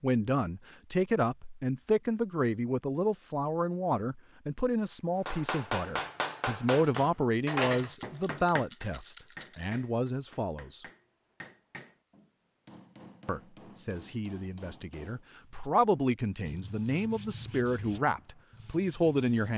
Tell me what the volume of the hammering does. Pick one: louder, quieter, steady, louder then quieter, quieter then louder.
quieter.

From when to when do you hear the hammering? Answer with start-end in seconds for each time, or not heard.
5.2-15.2.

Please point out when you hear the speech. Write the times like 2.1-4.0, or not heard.
0.0-10.8, 13.2-19.5.